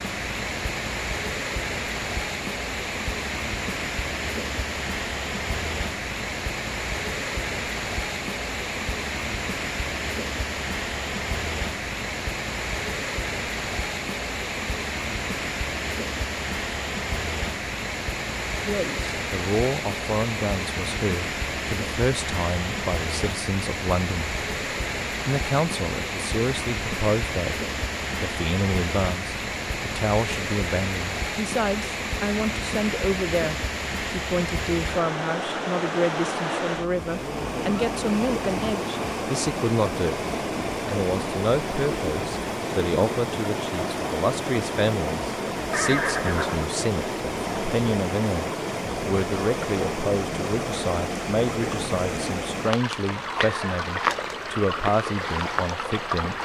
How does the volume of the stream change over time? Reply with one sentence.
The volume of the stream stays about the same.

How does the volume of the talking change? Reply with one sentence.
The volume of the talking stays about the same.